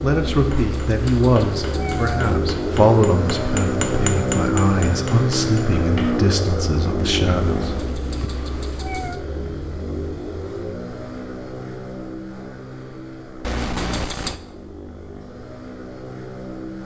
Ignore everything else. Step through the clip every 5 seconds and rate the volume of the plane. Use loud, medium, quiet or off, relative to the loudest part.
loud, loud, medium, medium.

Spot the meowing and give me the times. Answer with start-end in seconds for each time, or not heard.
0.5-2.4, 7.5-9.2, 13.4-14.4.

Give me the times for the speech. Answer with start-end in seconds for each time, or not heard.
0.0-8.3.